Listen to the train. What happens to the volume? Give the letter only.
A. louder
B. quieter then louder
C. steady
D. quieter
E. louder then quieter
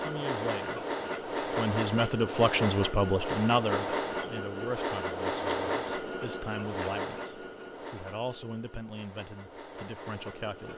D.